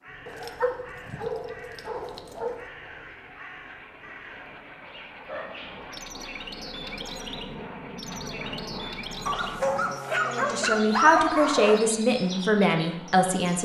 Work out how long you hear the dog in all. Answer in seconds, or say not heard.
6 s.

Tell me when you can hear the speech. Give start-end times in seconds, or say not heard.
10.2-13.5.